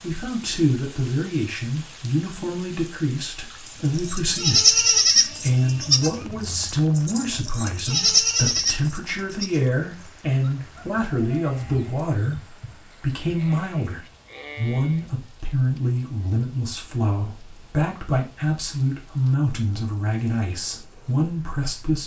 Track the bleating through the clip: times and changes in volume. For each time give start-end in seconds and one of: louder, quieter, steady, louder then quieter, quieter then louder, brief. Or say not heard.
3.6-15.1 quieter.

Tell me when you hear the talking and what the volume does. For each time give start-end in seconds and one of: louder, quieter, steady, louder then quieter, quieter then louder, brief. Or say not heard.
0.0-22.0 steady.